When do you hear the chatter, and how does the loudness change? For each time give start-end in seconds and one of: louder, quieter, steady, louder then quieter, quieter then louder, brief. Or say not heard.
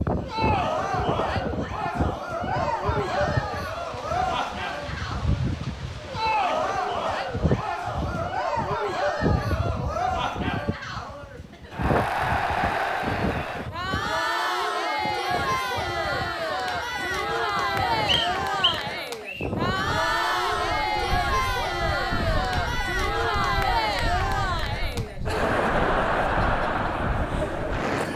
0.1-28.1 steady.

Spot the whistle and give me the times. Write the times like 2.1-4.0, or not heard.
18.1-19.5.